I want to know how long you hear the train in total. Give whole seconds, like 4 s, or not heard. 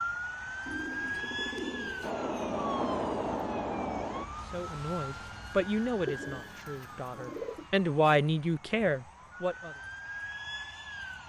2 s.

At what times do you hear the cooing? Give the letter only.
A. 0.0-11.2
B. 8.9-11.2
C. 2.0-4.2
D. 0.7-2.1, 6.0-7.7
D.